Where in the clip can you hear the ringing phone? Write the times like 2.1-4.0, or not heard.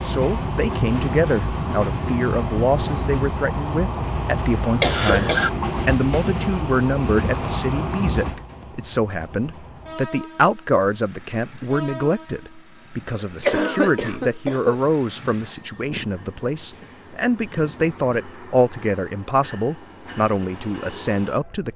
not heard.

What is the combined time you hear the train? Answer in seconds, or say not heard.
22 s.